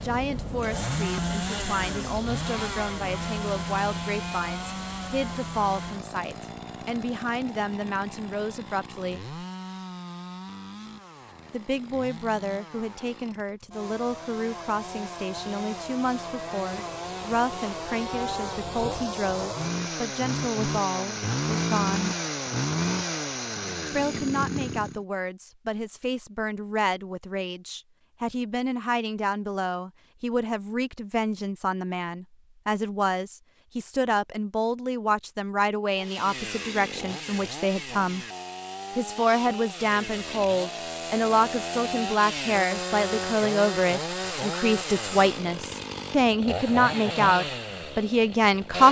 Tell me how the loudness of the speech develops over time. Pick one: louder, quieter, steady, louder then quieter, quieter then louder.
louder.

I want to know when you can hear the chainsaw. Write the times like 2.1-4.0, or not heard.
0.0-25.0, 35.9-48.8.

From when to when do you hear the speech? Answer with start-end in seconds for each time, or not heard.
0.0-9.3, 11.5-22.1, 23.9-38.2, 39.0-48.8.